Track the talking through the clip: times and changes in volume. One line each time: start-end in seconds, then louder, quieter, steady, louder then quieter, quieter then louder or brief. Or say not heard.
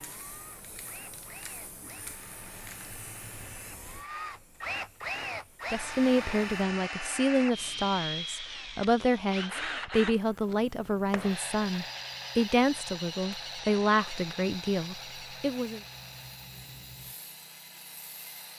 5.7-15.8 steady.